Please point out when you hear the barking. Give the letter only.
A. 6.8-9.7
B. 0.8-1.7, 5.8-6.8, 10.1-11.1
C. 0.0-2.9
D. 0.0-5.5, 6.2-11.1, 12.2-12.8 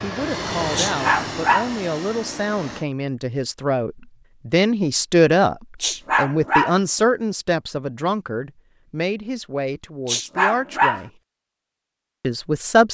B.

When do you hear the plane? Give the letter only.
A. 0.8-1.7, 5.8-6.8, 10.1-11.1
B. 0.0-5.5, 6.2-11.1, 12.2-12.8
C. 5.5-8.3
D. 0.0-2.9
D.